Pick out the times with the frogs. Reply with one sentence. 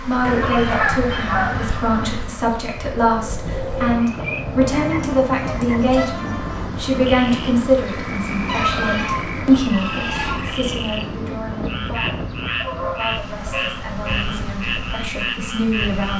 The frogs can be heard from 3.8 to 11.1 s and from 11.7 to 16.1 s.